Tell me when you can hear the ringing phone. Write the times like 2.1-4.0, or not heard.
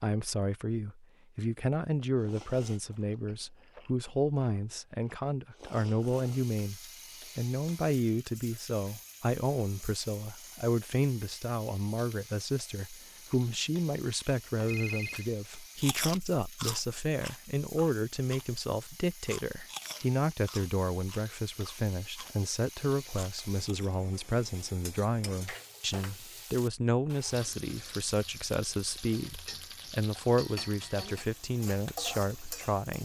14.7-15.3.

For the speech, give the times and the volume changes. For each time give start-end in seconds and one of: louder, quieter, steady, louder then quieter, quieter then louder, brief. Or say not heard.
0.0-33.0 steady.